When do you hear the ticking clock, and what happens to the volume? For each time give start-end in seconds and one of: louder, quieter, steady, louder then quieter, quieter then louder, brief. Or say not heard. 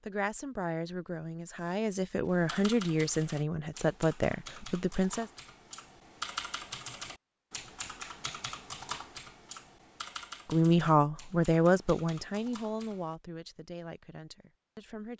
not heard.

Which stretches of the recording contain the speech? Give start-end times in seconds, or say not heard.
0.0-5.2, 10.5-15.1.